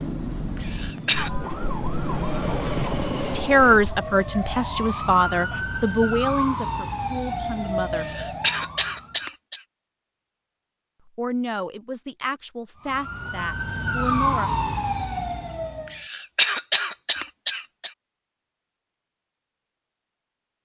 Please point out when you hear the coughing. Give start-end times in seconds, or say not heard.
0.6-1.3, 8.0-9.6, 15.8-17.9.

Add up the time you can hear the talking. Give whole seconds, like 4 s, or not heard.
8 s.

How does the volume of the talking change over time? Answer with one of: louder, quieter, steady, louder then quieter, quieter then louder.
quieter.